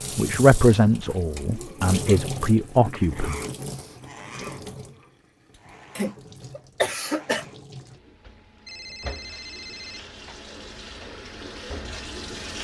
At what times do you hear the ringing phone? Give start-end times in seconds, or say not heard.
8.7-10.0.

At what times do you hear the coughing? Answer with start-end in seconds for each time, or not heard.
6.0-7.5.